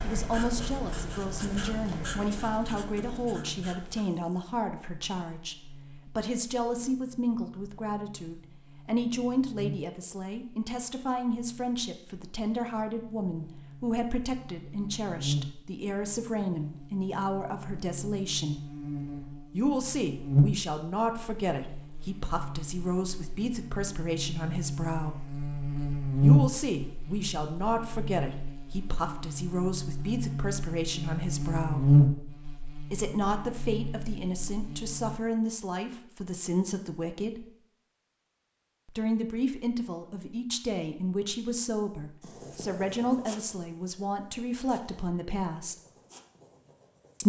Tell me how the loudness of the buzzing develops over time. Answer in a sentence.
The volume of the buzzing goes up.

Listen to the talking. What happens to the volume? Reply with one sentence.
The volume of the talking stays about the same.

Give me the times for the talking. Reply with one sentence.
You can hear the talking from 0.0 to 18.6 s, from 19.5 to 25.2 s, from 26.2 to 31.9 s, from 32.9 to 37.5 s and from 38.9 to 45.8 s.